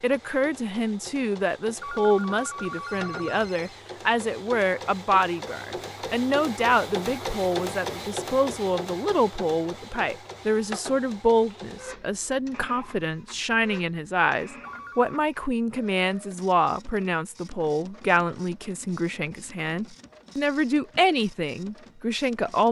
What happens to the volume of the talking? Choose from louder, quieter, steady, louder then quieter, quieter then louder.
steady.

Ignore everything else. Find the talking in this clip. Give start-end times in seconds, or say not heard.
0.0-22.6.